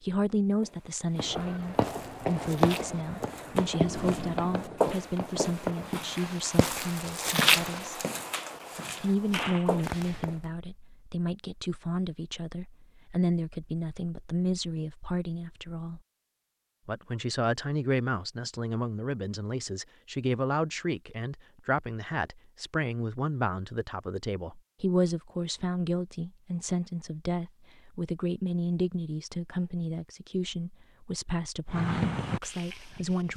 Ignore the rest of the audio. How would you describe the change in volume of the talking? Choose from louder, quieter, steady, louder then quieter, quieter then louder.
steady.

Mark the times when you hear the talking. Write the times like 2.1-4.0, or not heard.
0.0-8.0, 9.0-16.0, 16.9-33.3.